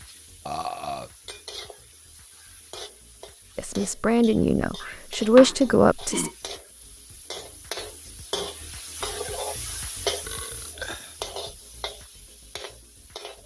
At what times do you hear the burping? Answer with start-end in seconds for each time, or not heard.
0.5-1.1, 4.8-6.3, 10.2-11.2.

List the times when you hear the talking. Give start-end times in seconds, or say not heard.
3.5-6.3.